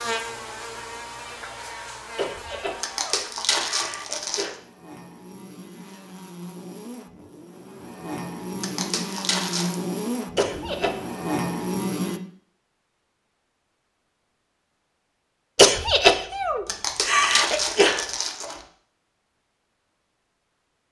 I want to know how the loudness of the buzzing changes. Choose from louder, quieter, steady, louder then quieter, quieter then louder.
quieter then louder.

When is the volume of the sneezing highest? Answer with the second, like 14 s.
16 s.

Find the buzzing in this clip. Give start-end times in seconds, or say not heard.
0.0-12.2.